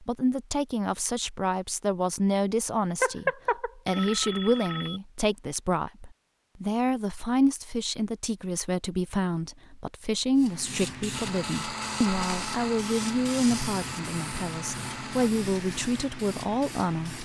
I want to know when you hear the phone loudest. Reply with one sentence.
The volume of the phone peaks at 3 seconds.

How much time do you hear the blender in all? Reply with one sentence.
The blender can be heard for 4 seconds in total.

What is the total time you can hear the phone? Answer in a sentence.
You can hear the phone for 2 seconds altogether.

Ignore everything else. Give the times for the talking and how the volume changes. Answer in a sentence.
You can hear the talking from 0.0 to 17.1 s, at a steady volume.